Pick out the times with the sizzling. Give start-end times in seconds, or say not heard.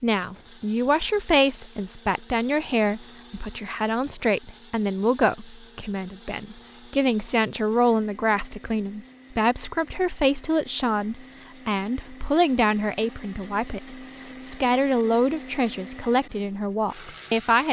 not heard.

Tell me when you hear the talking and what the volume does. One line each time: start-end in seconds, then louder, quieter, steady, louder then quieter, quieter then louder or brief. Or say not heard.
0.0-17.6 steady.